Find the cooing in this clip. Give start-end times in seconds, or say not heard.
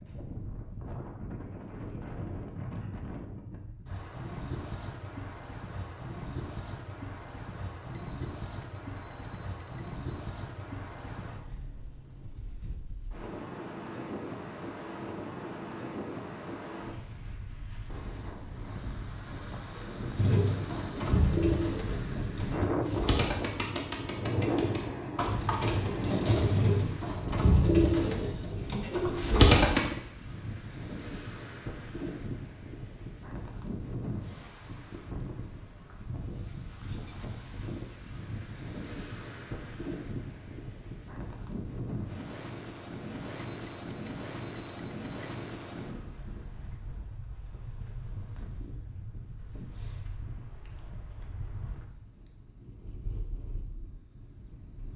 20.1-29.8.